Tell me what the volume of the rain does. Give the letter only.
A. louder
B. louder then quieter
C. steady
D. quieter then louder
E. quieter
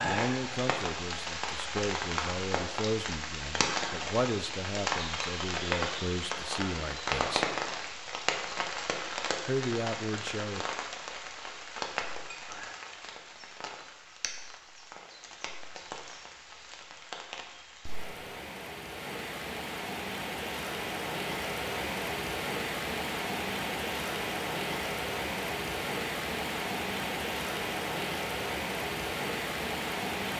D.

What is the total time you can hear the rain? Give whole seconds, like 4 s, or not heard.
30 s.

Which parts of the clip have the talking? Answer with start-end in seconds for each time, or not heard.
0.0-7.5, 9.4-10.7.